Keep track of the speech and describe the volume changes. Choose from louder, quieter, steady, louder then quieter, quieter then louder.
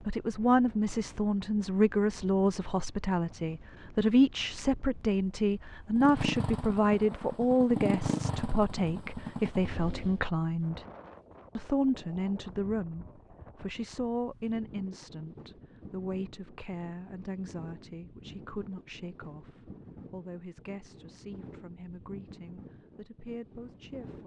quieter.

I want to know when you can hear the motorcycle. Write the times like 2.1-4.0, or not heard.
5.9-10.2.